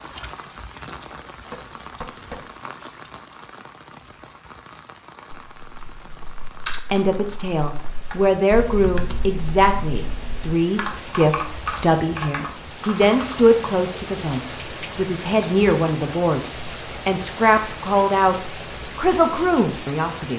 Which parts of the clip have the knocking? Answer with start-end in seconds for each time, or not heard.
1.4-2.5.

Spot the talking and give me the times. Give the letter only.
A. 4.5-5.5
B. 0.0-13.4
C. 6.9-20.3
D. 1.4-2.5
C.